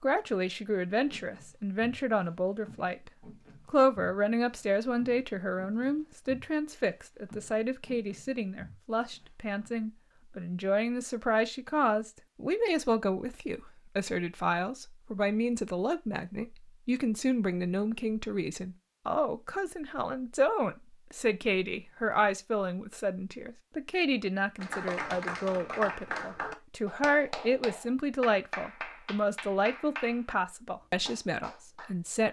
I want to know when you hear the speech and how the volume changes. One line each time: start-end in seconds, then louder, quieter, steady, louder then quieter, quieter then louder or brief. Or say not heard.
0.0-32.2 steady.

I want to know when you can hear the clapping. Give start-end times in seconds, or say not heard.
24.6-31.9.